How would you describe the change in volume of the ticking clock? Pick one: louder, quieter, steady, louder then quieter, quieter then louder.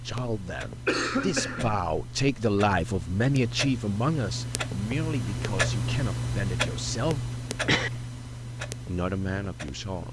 louder then quieter.